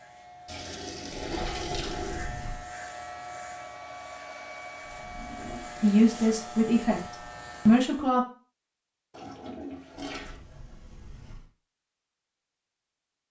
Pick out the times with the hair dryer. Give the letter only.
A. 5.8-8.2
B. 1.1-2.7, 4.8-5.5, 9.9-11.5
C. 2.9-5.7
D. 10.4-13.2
C.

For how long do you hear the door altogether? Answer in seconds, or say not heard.
4 s.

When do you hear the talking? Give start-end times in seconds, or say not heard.
5.8-8.2.